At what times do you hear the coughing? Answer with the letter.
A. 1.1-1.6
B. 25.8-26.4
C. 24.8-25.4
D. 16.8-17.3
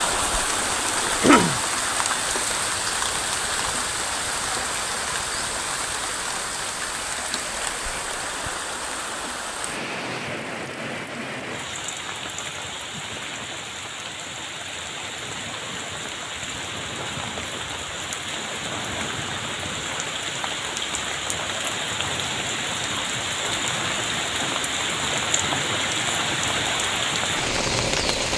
A.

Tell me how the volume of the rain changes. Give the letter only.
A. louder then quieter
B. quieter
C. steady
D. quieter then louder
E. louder
D.